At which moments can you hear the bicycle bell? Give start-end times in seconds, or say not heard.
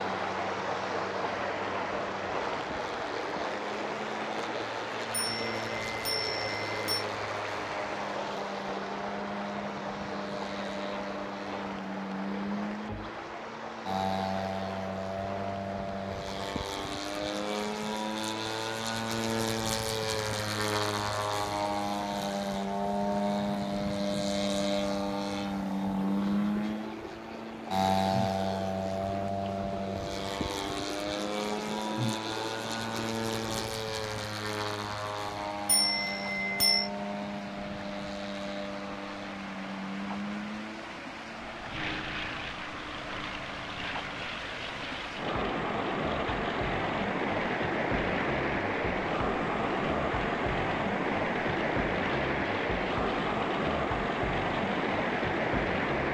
5.1-7.0, 35.6-36.9.